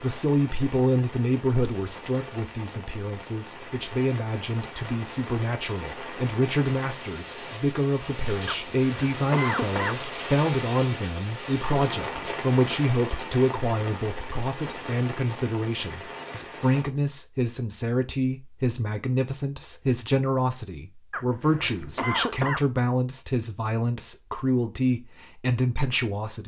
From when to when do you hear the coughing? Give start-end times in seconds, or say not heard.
8.4-10.0, 21.1-22.6.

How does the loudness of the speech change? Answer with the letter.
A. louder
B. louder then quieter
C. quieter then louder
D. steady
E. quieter
D.